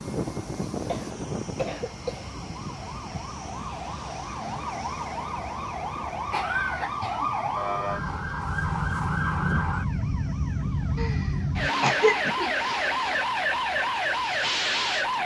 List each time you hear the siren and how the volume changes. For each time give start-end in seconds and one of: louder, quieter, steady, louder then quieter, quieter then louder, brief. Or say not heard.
0.0-15.2 louder.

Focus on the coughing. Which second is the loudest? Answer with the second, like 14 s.
12 s.